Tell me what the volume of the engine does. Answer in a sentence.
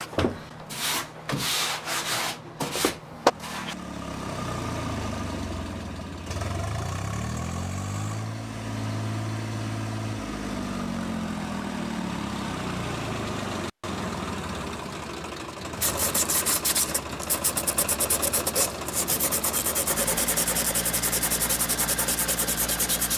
The volume of the engine stays about the same.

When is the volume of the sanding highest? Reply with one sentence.
The volume of the sanding peaks at 3 seconds.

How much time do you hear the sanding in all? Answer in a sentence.
The sanding can be heard for 11 seconds in total.